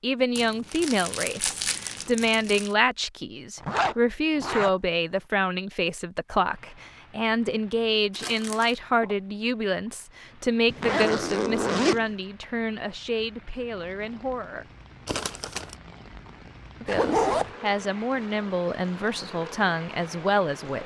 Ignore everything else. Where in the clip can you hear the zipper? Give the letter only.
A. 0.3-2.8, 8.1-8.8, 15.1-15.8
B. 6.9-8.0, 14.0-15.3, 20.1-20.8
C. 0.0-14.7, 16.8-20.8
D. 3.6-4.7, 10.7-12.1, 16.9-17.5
D.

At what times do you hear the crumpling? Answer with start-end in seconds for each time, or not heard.
0.3-2.8, 8.1-8.8, 15.1-15.8.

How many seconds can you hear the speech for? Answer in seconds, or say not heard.
19 s.